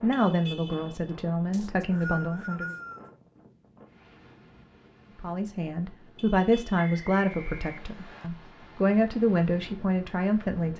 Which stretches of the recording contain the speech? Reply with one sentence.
You can hear the speech from 0.0 to 2.8 s and from 5.2 to 10.7 s.